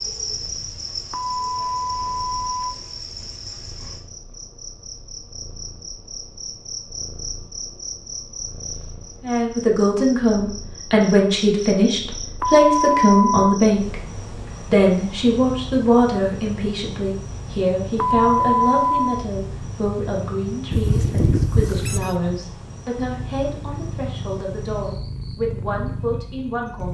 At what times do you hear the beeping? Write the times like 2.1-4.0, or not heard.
1.1-2.8, 12.4-13.6, 17.9-19.2.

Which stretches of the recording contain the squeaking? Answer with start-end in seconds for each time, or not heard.
20.7-22.1.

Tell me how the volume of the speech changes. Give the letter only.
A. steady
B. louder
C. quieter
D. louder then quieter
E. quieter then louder
C.